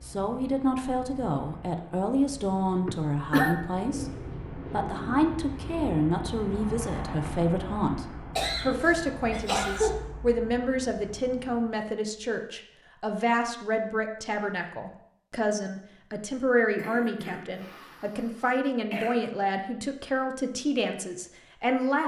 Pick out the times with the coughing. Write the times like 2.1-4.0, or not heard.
2.9-3.6, 8.3-10.0, 16.8-19.1.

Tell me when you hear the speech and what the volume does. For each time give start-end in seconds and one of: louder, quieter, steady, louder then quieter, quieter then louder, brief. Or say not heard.
0.0-22.0 steady.